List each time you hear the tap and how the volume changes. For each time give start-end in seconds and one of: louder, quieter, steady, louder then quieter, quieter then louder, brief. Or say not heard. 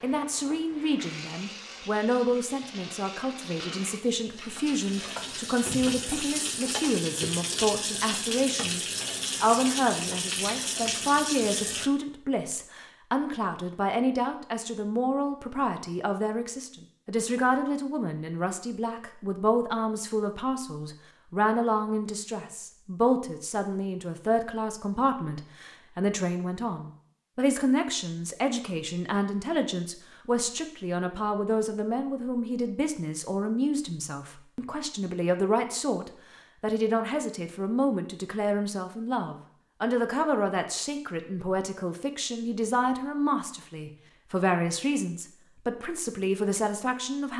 0.0-11.9 louder.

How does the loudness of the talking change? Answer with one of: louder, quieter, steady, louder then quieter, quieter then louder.
steady.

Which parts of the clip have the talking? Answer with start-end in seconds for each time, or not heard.
0.0-47.3.